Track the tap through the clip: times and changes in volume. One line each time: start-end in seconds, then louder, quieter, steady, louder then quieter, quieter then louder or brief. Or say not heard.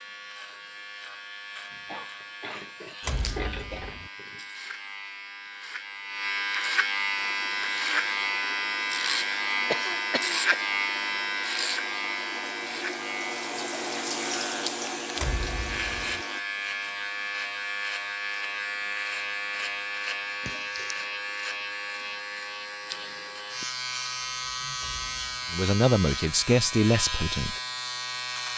7.2-16.4 louder.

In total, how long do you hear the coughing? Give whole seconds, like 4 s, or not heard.
4 s.